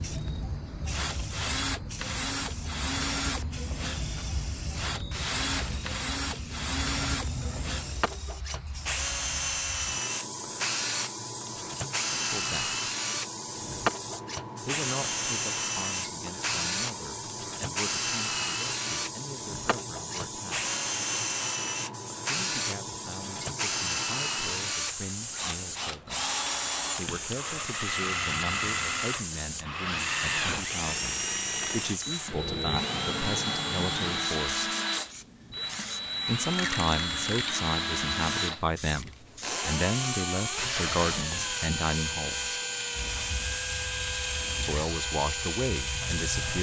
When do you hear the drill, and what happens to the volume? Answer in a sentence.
The drill can be heard from 0.0 to 46.5 s, at a steady volume.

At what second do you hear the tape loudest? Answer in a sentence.
The volume of the tape peaks at 41 seconds.